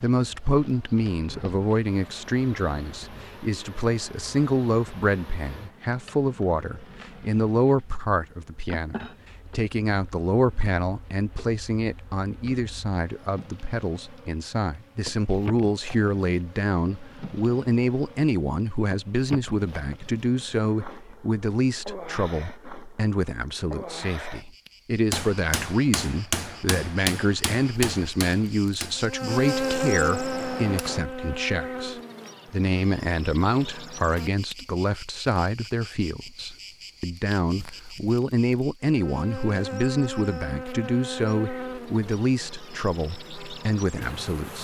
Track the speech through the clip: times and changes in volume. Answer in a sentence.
The speech can be heard from 0.0 to 44.5 s, at a steady volume.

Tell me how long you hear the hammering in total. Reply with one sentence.
The hammering can be heard for 6 seconds in total.